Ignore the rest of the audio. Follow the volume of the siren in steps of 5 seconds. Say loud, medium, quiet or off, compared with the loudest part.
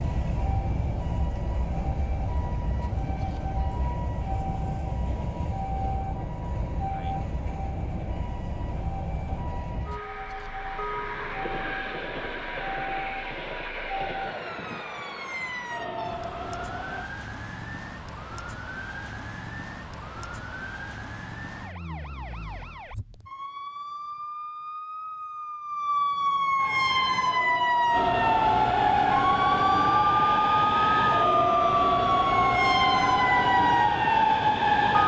quiet, quiet, quiet, quiet, quiet, loud, loud.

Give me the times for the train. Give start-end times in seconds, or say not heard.
0.0-17.1, 26.6-35.0.